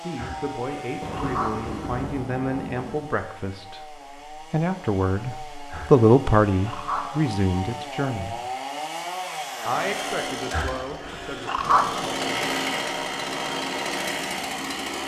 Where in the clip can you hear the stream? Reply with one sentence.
The stream can't be heard in this clip.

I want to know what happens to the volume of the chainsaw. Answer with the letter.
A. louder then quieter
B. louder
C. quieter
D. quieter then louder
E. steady
B.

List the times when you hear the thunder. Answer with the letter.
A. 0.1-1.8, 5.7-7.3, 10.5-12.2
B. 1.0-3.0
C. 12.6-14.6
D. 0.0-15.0
B.